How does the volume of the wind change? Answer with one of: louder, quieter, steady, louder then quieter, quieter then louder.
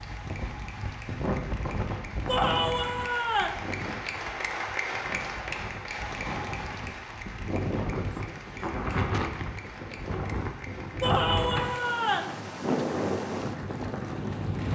quieter then louder.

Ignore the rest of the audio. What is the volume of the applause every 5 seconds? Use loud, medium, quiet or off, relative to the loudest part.
loud, loud, medium.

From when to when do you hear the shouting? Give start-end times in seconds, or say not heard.
2.2-3.6, 11.0-12.3.